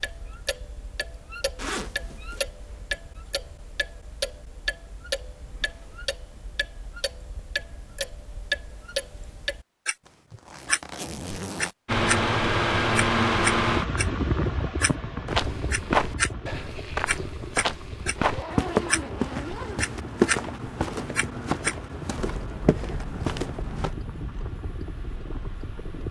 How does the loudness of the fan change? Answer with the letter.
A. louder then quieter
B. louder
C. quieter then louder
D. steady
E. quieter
E.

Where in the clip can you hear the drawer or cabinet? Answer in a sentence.
You can't hear the drawer or cabinet here.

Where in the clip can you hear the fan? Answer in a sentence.
You can hear the fan from 11.8 to 26.0 s.